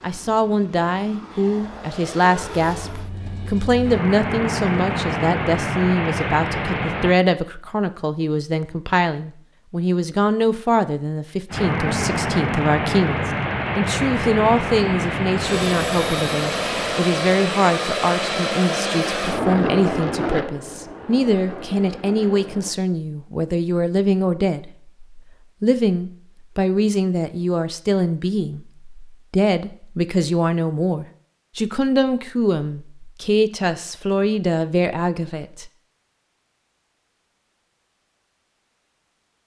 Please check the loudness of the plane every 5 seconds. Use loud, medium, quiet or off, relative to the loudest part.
medium, loud, loud, loud, medium, off, off, off.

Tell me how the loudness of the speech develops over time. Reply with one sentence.
The volume of the speech stays about the same.